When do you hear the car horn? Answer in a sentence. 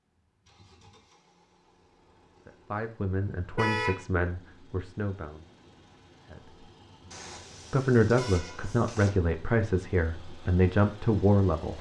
The car horn can be heard from 3.5 to 4.0 s and from 7.1 to 9.1 s.